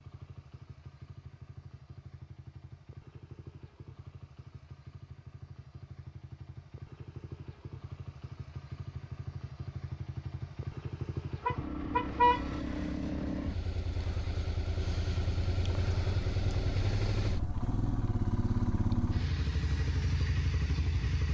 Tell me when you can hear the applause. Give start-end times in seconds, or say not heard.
not heard.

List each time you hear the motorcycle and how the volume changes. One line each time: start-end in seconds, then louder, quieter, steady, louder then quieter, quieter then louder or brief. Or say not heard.
0.0-21.2 louder.